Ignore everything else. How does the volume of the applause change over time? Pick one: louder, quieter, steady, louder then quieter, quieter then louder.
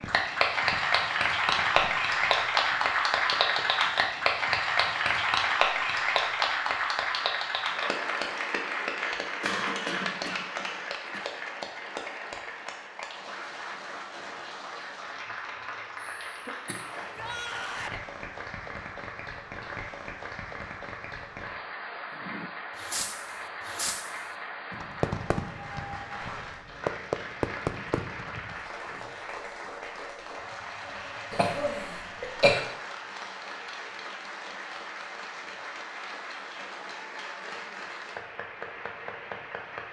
quieter.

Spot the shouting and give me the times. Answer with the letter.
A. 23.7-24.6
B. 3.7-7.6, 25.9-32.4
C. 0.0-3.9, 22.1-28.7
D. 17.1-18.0
D.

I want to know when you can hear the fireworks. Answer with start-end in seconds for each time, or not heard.
0.0-3.9, 22.1-28.7.